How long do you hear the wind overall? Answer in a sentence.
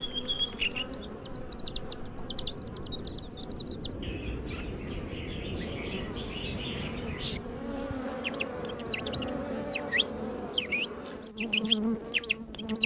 You can hear the wind for 13 seconds altogether.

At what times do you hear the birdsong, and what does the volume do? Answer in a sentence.
The birdsong can be heard from 0.0 to 12.8 s, getting quieter then louder.